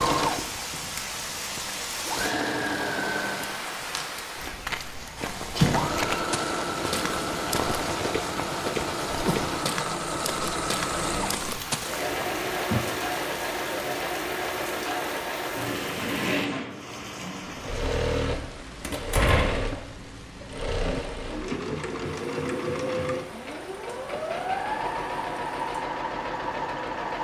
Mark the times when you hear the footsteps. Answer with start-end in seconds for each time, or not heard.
4.3-12.8.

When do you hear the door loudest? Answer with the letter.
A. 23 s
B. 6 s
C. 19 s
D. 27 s
C.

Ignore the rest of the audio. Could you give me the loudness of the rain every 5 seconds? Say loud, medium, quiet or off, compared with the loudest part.
loud, loud, medium, medium, quiet, quiet.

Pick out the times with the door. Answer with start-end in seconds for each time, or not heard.
4.9-6.0, 18.8-19.7.